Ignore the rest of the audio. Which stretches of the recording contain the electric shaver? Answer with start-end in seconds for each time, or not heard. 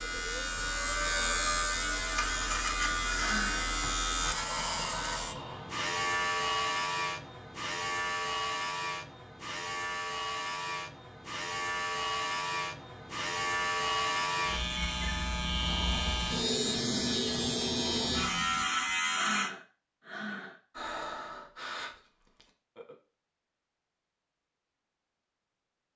0.0-19.5.